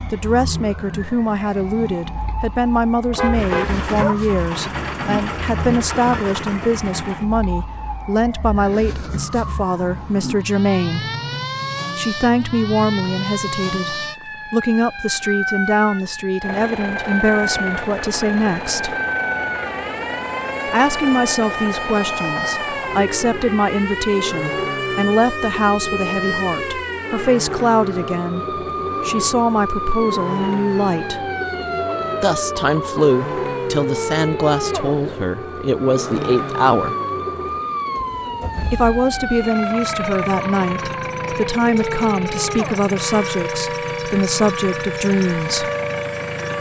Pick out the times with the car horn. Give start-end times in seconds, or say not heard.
3.1-3.8.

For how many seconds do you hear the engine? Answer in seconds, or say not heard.
34 s.